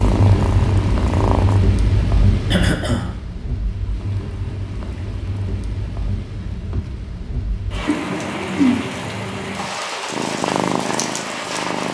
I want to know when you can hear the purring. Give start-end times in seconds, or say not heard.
0.0-1.6, 10.1-11.8.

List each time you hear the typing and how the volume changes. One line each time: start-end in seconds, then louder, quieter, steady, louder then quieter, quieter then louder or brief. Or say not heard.
not heard.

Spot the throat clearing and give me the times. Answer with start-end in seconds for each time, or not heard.
2.5-3.1, 7.8-8.9.